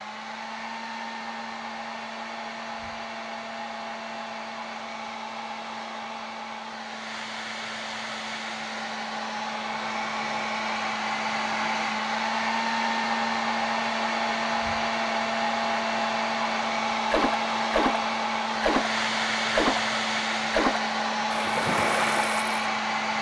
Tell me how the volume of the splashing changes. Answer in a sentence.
The volume of the splashing stays about the same.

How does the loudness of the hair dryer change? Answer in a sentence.
The volume of the hair dryer goes up.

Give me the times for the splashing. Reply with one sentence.
The splashing can be heard from 17.1 to 22.6 s.